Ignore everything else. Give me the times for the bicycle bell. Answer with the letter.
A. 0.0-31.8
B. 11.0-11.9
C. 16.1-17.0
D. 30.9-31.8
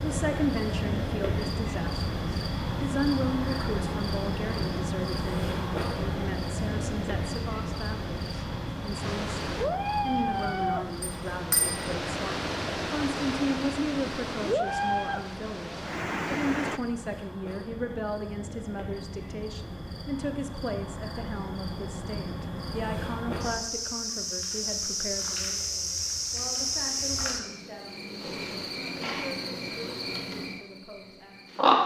B.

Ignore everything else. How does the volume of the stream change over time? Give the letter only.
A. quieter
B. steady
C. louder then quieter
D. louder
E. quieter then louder
D.